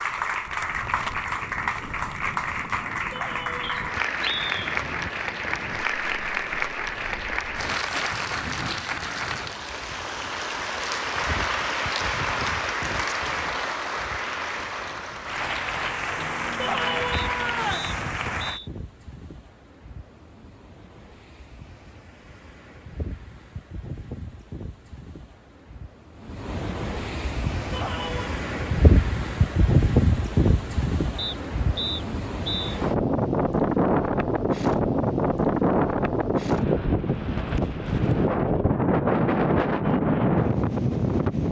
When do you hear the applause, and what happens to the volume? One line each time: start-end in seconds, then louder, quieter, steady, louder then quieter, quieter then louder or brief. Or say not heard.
0.0-18.6 steady.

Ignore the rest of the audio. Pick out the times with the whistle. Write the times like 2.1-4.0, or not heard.
3.6-4.5, 17.1-18.7, 31.1-32.8.